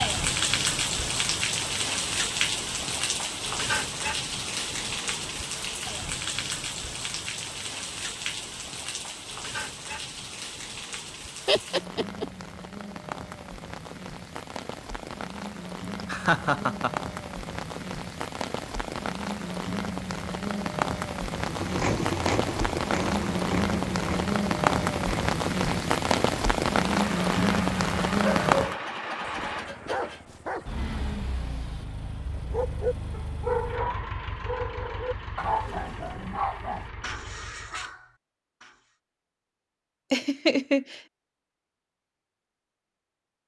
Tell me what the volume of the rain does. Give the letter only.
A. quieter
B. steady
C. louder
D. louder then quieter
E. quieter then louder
E.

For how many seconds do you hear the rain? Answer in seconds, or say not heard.
29 s.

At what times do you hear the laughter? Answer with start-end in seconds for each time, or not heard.
11.4-12.2, 15.9-16.9, 40.1-41.0.